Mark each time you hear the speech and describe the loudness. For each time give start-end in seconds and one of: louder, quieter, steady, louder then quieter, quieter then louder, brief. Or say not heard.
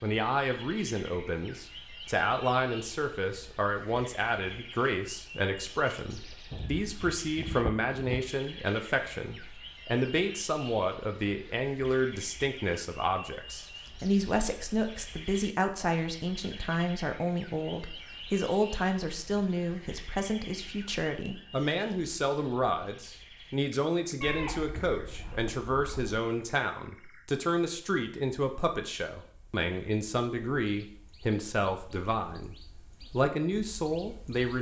0.0-34.5 steady.